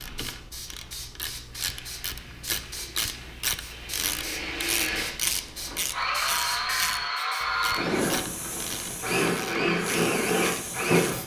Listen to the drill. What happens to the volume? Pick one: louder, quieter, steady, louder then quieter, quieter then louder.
louder.